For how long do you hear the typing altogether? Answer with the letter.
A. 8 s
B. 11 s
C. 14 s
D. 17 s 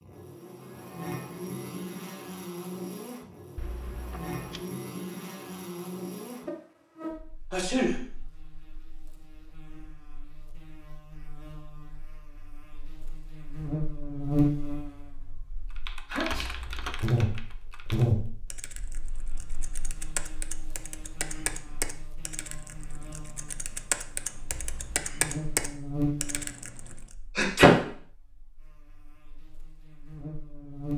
B.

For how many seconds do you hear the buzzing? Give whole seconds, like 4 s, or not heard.
31 s.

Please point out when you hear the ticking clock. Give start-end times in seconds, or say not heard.
not heard.